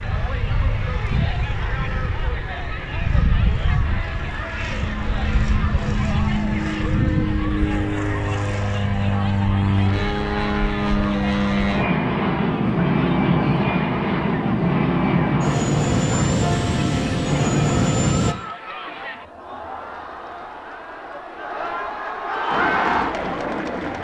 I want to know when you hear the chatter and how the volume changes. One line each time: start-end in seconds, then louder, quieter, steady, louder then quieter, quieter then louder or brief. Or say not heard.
0.0-23.9 louder.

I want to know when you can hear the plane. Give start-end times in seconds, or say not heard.
0.0-18.4, 22.5-23.9.